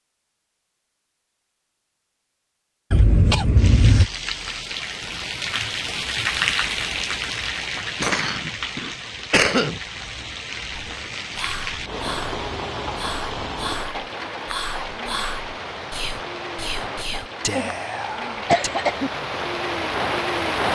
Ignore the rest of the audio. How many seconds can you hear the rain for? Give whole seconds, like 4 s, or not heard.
17 s.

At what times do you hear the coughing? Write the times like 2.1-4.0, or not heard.
2.9-4.1, 7.8-9.8, 17.1-17.7, 18.4-19.1.